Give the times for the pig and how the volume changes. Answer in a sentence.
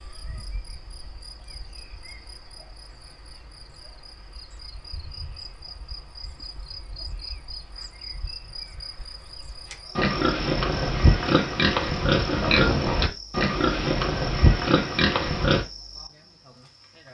The pig can be heard from 9.7 to 15.7 s, at a steady volume.